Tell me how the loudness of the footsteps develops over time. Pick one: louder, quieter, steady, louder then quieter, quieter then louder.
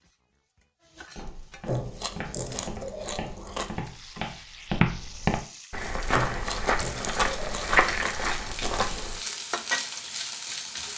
louder.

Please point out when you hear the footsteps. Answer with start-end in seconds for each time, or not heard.
1.1-9.2.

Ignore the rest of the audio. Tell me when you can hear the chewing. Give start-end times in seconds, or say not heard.
1.6-3.9, 6.1-8.2.